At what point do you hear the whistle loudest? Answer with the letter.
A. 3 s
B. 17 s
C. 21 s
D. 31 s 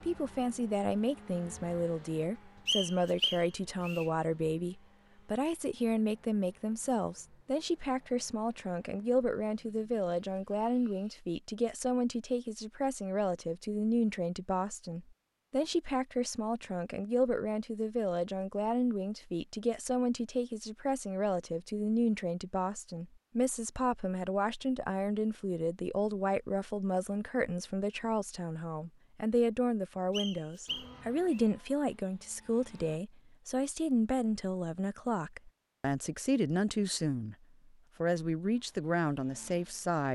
A.